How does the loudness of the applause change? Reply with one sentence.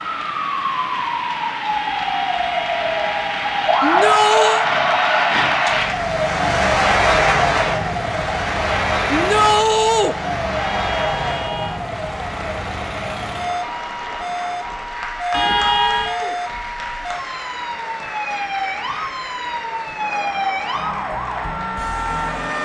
The volume of the applause goes up, then down.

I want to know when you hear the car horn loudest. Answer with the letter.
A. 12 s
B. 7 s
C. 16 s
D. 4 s
C.